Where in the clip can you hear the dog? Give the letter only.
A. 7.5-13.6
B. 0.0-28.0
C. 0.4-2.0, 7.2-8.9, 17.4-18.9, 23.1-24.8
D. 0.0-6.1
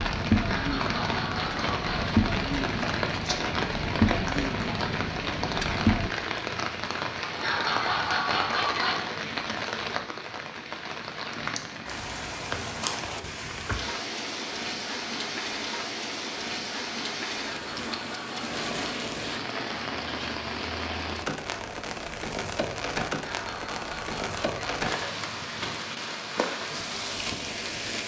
C.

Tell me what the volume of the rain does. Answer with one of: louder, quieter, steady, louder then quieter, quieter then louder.
steady.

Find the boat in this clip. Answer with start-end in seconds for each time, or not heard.
0.0-6.1.